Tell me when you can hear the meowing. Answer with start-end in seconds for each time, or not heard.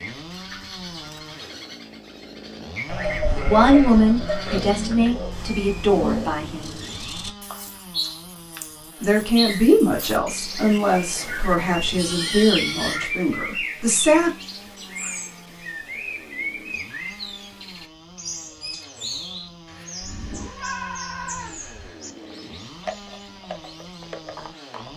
4.5-6.3.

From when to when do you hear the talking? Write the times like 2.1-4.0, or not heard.
3.5-6.8, 9.0-14.3.